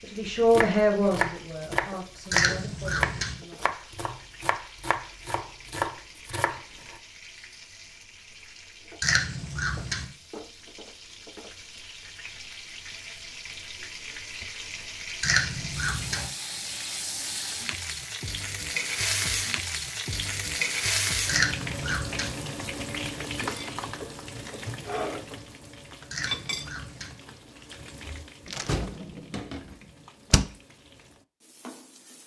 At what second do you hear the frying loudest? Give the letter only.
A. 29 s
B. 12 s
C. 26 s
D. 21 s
D.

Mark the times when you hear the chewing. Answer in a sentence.
The chewing can be heard from 2.3 to 3.4 s, from 9.0 to 10.1 s, from 15.2 to 16.3 s, from 21.2 to 22.4 s and from 26.1 to 27.1 s.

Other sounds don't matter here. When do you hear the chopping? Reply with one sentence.
The chopping can be heard from 0.2 to 7.0 s.